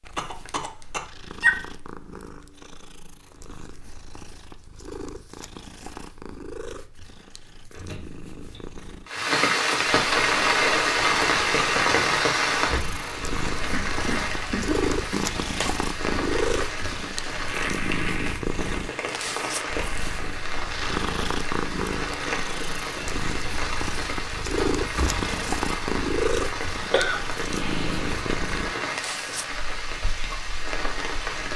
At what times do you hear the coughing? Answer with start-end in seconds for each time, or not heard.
0.1-1.6, 13.7-15.7, 26.9-28.1.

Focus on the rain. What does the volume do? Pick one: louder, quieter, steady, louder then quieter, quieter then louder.
quieter.